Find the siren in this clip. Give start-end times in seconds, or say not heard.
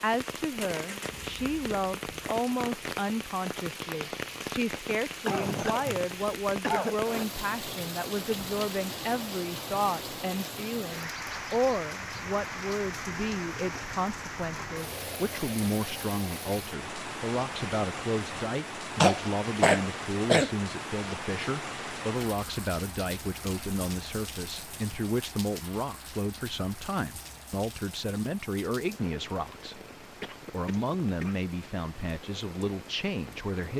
not heard.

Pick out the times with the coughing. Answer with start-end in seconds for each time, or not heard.
5.2-7.0, 19.0-20.5, 29.9-31.4.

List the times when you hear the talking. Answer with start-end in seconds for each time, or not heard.
0.0-29.8, 30.5-33.7.